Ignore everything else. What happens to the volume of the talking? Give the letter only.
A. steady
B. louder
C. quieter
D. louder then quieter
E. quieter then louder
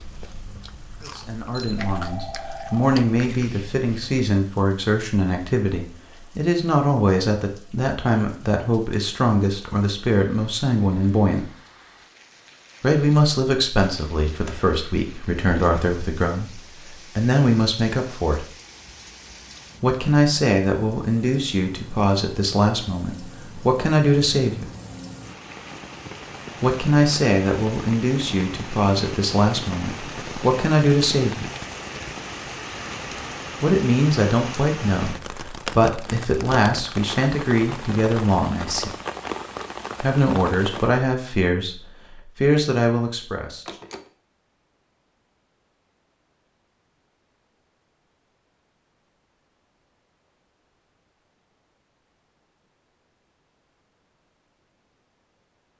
A.